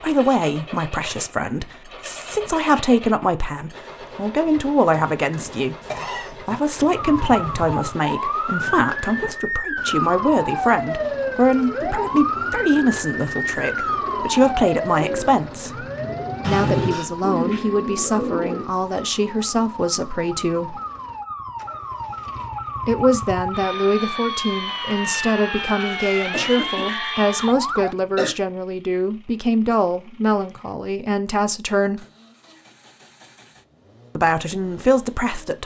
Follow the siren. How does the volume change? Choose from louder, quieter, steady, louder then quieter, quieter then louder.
quieter then louder.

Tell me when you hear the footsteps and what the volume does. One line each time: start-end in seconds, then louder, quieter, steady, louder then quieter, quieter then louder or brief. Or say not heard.
not heard.